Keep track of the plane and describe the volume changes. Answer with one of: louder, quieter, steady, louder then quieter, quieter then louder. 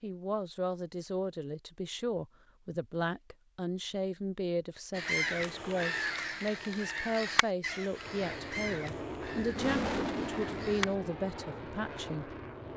louder then quieter.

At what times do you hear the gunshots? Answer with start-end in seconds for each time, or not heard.
not heard.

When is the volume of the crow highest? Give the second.
5 s.